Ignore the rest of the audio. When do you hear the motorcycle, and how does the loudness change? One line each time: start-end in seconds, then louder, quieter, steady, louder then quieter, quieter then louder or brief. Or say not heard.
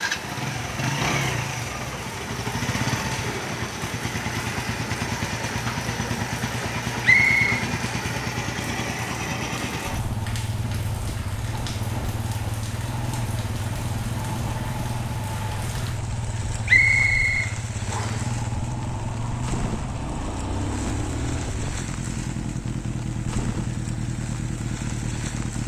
0.0-25.6 steady.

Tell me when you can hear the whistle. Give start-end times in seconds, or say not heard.
7.0-7.7, 16.6-18.2.